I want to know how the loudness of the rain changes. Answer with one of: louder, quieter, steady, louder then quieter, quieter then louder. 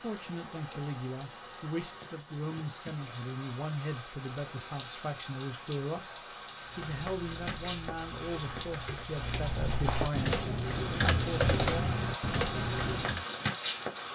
louder.